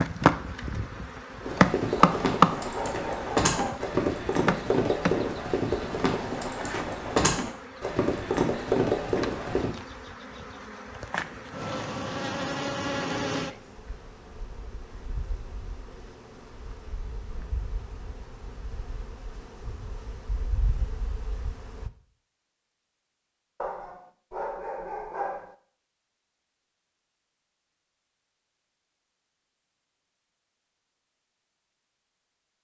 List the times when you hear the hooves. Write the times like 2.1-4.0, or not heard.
1.4-9.7.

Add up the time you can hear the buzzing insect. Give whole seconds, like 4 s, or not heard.
22 s.